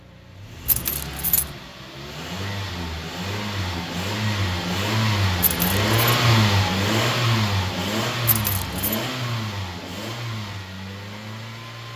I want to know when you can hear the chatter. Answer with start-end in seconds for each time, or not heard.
not heard.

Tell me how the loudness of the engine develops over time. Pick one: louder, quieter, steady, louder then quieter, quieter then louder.
louder then quieter.